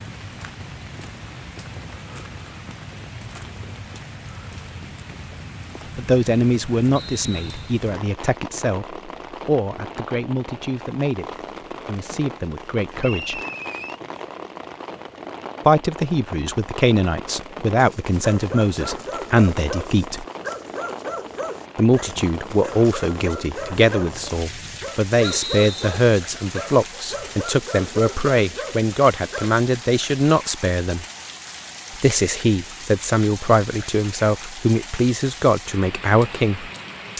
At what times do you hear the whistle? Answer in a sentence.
The whistle can be heard from 7.0 to 7.7 s, from 13.0 to 14.0 s and from 25.2 to 25.9 s.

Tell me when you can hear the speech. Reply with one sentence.
You can hear the speech from 6.0 to 13.4 s, from 15.7 to 20.2 s, from 21.8 to 31.1 s and from 31.9 to 37.1 s.